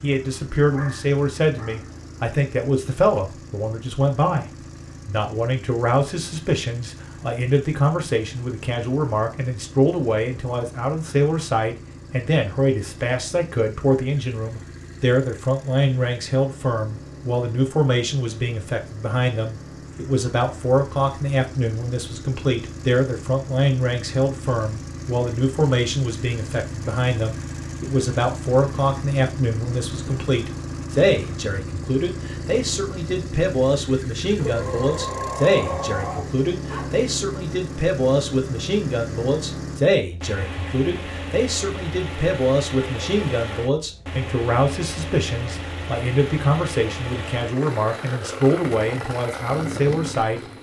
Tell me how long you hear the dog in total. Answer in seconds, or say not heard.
4 s.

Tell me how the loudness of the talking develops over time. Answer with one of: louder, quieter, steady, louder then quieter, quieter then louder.
steady.